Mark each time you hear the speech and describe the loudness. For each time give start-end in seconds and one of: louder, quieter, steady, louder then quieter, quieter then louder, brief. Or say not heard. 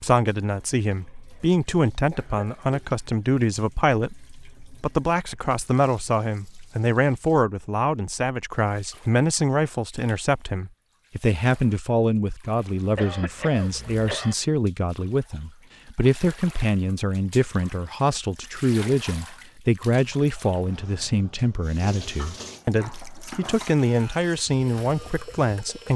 0.0-25.9 steady.